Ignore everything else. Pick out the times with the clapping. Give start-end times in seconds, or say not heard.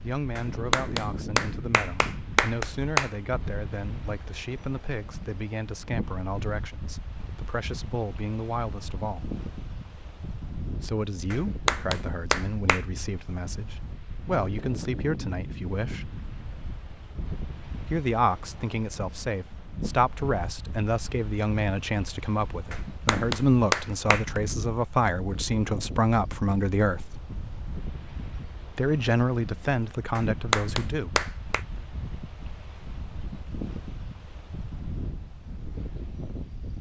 0.3-3.1, 11.3-12.8, 22.7-24.4, 30.1-31.6.